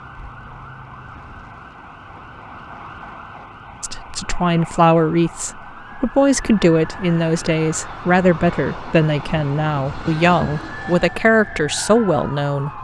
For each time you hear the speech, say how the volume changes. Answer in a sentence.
The speech can be heard from 3.8 to 12.7 s, at a steady volume.